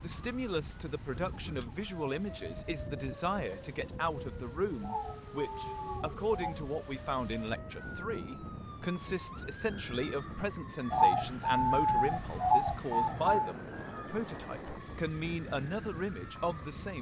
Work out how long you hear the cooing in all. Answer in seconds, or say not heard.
4 s.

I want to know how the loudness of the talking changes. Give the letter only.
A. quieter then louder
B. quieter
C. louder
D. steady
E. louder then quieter
D.